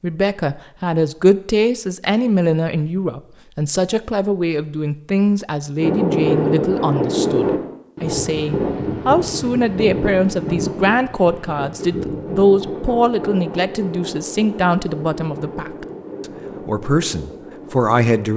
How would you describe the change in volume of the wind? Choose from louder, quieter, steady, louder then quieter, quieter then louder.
quieter.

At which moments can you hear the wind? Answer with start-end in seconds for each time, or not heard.
5.8-18.3.